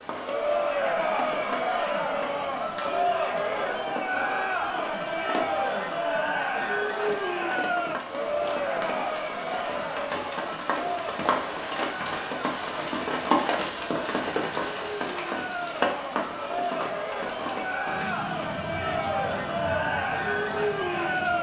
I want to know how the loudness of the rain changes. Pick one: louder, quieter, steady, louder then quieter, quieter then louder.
louder then quieter.